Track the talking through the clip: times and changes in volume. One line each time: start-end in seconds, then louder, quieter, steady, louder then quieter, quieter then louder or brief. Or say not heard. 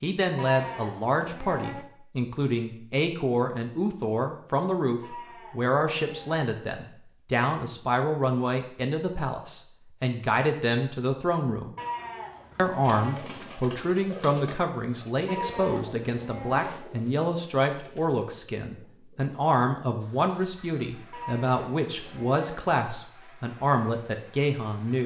0.0-11.8 steady
12.6-25.0 steady.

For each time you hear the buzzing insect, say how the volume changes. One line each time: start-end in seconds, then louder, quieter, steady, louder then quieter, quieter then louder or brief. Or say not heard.
not heard.